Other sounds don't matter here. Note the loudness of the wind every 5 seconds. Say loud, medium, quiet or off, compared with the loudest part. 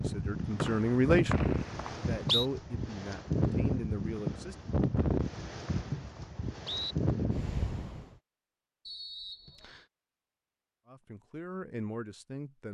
loud, loud, off.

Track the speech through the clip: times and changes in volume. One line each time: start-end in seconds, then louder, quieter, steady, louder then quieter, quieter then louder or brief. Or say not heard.
0.0-4.8 quieter then louder
10.8-12.7 brief.